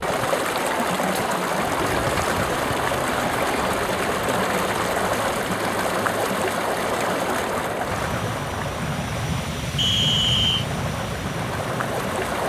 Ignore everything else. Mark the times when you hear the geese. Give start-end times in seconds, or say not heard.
not heard.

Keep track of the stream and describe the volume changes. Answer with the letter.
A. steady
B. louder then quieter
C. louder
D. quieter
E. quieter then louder
D.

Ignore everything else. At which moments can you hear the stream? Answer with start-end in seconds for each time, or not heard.
0.0-12.4.